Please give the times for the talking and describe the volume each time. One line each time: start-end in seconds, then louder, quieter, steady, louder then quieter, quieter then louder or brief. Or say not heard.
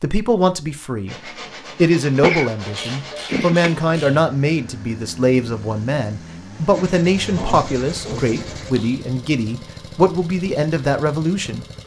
0.0-11.7 steady.